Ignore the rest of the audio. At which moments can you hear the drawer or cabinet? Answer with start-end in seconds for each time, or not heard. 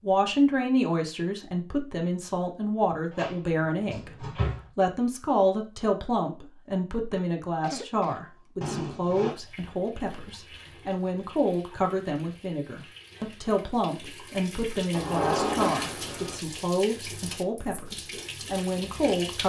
3.1-4.7, 8.6-9.3, 14.9-16.4.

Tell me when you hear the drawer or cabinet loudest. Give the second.
15 s.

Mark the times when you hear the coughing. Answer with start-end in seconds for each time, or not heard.
7.1-8.3.